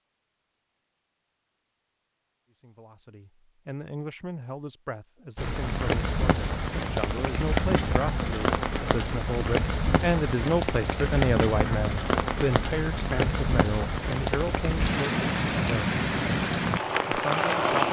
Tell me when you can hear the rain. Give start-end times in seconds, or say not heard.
5.3-17.8.